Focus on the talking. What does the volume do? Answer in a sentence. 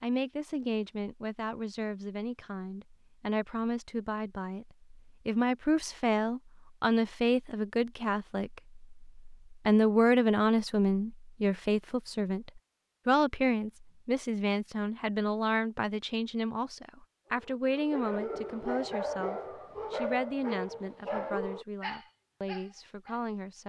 The volume of the talking goes up, then down.